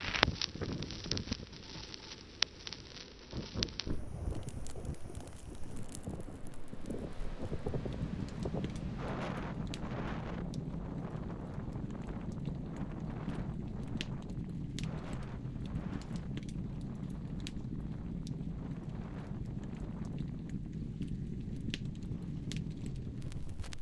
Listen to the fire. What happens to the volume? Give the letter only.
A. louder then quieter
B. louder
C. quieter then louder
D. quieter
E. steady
E.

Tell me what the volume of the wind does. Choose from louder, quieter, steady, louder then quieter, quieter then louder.
quieter.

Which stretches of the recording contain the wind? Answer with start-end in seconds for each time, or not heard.
0.0-23.7.